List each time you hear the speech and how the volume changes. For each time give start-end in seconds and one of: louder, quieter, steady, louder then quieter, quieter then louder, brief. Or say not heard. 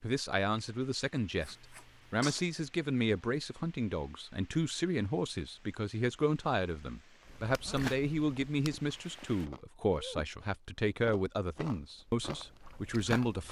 0.0-13.4 steady.